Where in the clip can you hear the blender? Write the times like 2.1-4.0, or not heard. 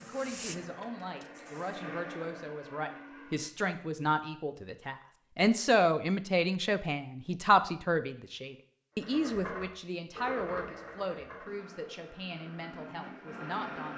0.0-3.5, 8.9-13.9.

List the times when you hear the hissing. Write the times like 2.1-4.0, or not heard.
0.0-1.9.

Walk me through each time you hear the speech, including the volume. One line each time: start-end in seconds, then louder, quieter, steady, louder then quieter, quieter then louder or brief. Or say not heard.
0.0-13.9 louder then quieter.